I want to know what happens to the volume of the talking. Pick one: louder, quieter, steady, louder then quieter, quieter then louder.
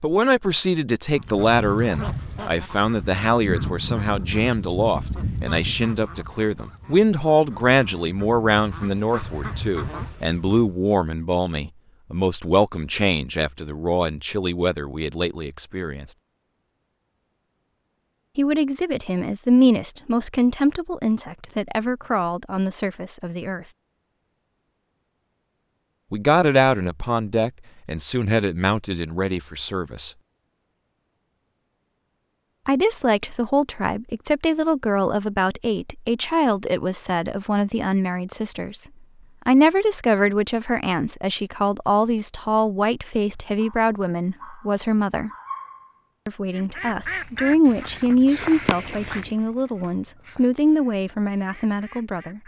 steady.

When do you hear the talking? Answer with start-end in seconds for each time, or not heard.
0.0-16.1, 18.4-23.6, 26.1-30.1, 32.6-38.9, 39.5-45.3, 46.2-52.4.